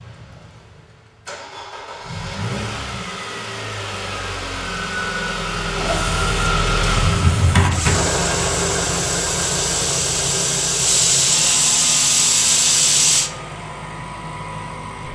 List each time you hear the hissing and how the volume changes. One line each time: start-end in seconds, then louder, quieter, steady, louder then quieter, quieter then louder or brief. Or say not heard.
5.8-13.3 louder.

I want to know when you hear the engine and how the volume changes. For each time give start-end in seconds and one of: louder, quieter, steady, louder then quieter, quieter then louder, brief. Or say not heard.
0.0-15.1 louder then quieter.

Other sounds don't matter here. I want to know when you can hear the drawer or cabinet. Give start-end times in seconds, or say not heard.
7.0-8.1.